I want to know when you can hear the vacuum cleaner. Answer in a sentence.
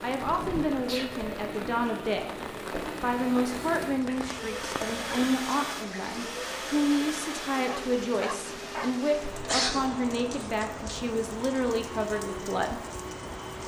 You can hear the vacuum cleaner from 0.0 to 13.6 s.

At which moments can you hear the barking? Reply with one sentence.
The barking can be heard from 7.7 to 9.0 s.